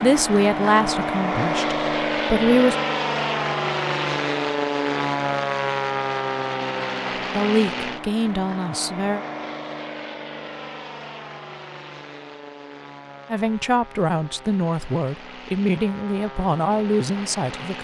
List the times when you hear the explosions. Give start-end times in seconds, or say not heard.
not heard.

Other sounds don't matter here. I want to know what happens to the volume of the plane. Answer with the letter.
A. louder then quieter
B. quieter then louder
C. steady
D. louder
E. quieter
E.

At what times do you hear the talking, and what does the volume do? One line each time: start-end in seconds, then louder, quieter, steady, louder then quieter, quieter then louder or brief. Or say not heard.
0.0-2.8 brief
7.2-9.2 brief
13.3-17.7 steady.